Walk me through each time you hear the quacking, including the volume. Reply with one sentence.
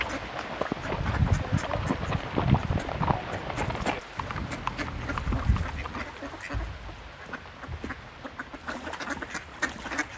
You can hear the quacking from 0.0 to 10.1 s, getting louder.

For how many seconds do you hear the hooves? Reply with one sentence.
You can hear the hooves for 6 seconds altogether.